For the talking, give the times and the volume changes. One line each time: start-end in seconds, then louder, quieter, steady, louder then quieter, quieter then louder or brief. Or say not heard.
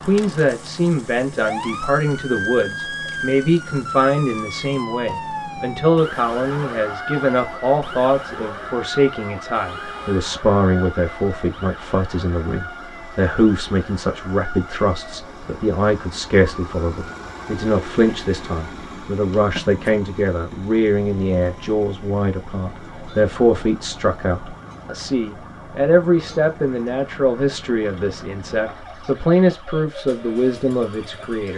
0.0-31.5 steady.